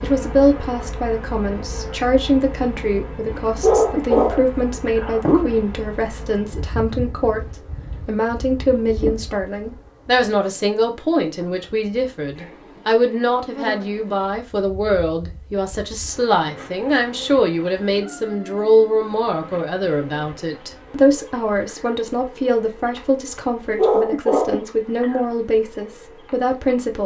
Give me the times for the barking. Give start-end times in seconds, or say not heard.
3.6-5.5, 23.8-25.2.